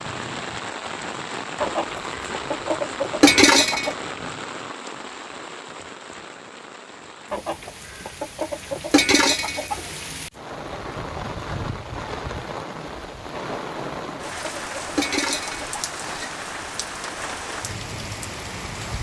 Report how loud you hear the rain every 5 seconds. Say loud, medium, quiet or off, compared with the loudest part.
loud, medium, loud, loud.